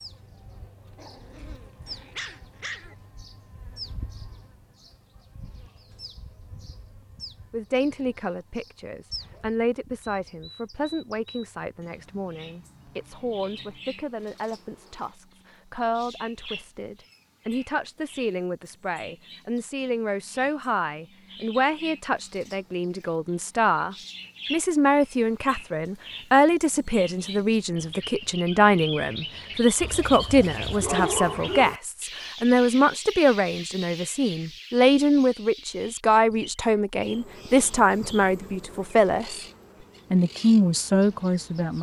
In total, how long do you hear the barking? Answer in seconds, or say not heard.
4 s.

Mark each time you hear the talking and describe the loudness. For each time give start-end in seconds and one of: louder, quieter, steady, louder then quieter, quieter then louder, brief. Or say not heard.
7.5-39.4 louder
40.1-41.7 brief.